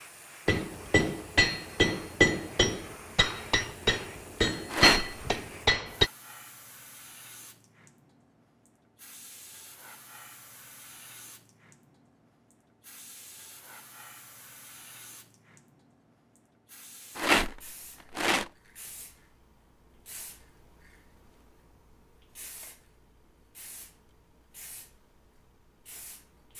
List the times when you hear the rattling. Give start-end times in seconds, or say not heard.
4.7-5.2, 17.1-18.4.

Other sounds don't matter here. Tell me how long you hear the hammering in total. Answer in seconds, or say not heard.
6 s.